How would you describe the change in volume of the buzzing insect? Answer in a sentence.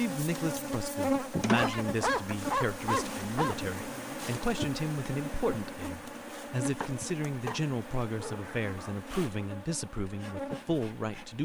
The volume of the buzzing insect goes down.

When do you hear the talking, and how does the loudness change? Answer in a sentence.
The talking can be heard from 0.0 to 11.4 s, at a steady volume.